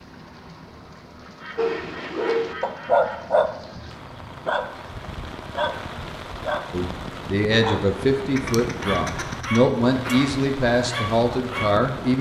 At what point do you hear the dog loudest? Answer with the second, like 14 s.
3 s.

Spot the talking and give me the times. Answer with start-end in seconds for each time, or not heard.
6.7-12.1.